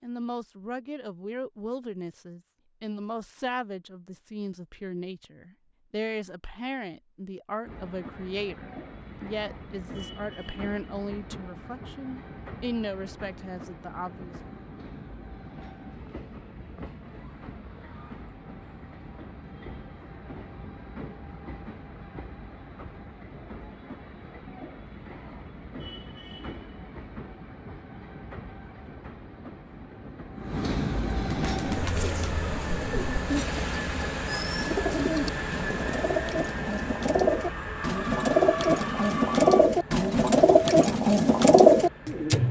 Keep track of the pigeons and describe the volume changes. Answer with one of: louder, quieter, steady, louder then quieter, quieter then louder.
louder.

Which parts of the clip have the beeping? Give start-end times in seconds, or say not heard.
not heard.